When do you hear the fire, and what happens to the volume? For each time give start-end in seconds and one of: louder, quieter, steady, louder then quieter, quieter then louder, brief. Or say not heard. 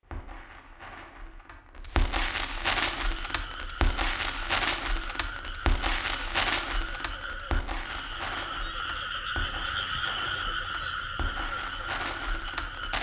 0.0-12.9 quieter.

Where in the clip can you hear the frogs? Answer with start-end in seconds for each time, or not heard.
3.0-12.9.